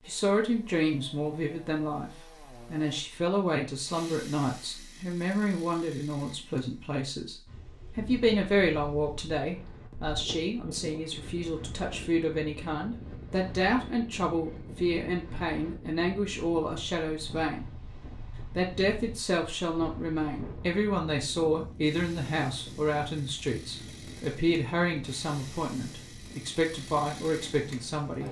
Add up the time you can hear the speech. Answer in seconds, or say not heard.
26 s.